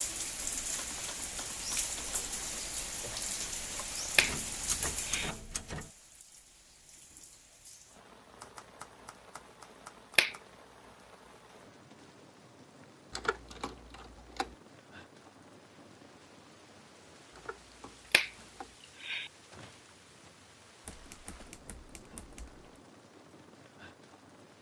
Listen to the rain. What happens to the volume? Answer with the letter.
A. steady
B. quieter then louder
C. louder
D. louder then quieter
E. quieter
E.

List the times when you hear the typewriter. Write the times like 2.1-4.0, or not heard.
0.8-2.4, 4.2-5.9, 8.3-10.4, 13.1-14.6, 17.3-18.8, 20.9-22.6.